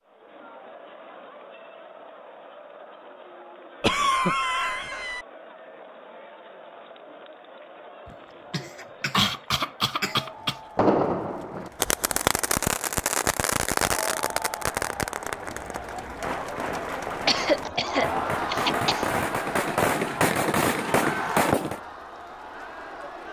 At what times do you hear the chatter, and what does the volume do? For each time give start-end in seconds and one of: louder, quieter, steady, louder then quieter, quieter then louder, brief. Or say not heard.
0.0-23.2 louder.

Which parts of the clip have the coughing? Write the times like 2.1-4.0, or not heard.
3.8-5.2, 8.1-10.6, 17.2-19.1.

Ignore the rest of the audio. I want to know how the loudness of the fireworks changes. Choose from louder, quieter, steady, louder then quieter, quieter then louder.
quieter then louder.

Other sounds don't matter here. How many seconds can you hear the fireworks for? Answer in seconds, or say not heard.
11 s.